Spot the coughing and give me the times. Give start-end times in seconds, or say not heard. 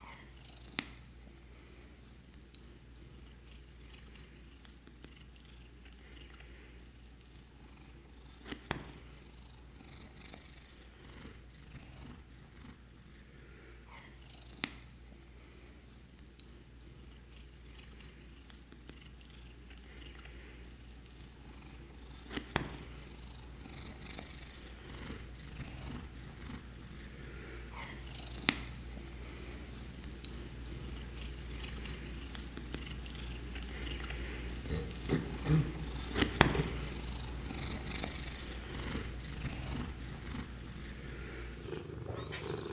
34.6-36.6.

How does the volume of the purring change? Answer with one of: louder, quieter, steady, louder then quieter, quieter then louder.
louder.